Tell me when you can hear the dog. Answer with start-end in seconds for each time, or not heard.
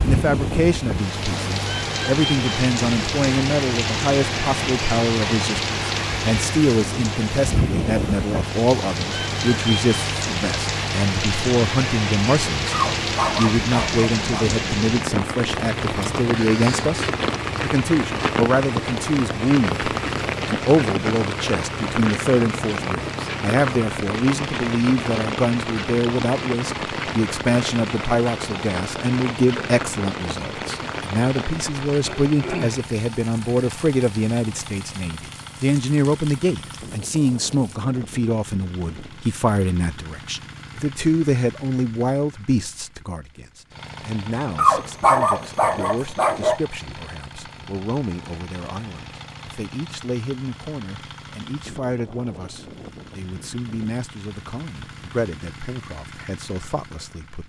12.7-14.5, 44.5-46.6.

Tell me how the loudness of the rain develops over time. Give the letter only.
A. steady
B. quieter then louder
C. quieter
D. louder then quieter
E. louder
C.